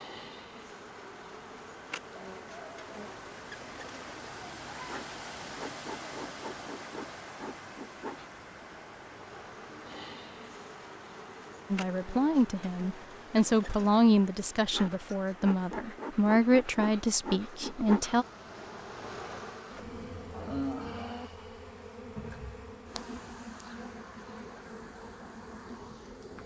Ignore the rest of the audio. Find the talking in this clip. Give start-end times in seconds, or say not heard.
11.7-18.2.